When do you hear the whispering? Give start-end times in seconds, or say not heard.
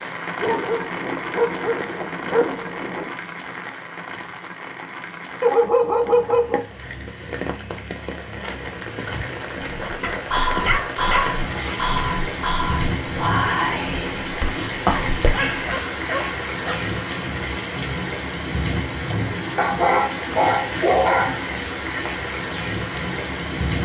9.6-15.5.